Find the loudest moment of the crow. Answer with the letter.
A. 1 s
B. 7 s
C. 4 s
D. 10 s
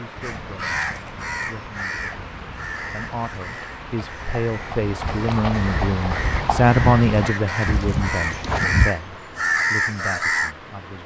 D.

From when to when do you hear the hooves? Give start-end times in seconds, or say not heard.
0.1-8.9.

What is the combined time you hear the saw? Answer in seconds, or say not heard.
not heard.